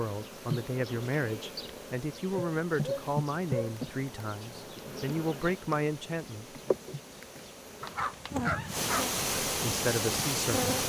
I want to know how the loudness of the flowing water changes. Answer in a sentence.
The volume of the flowing water goes up.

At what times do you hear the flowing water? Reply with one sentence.
You can hear the flowing water from 0.0 to 10.8 s.